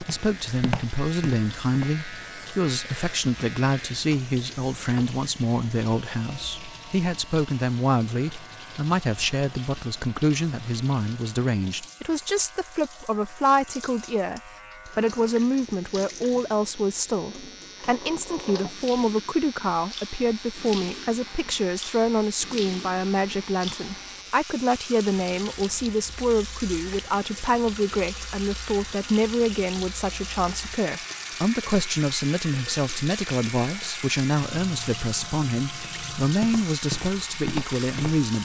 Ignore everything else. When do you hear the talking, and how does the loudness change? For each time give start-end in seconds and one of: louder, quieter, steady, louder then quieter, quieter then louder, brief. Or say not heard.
0.0-38.4 steady.